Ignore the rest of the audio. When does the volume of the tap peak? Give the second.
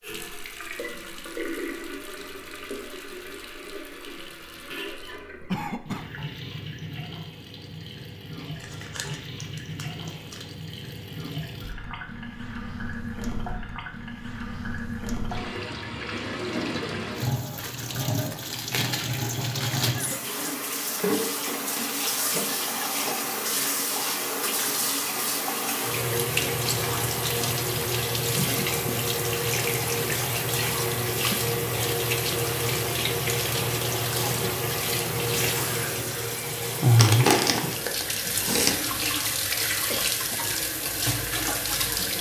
37 s.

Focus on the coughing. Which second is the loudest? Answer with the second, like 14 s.
6 s.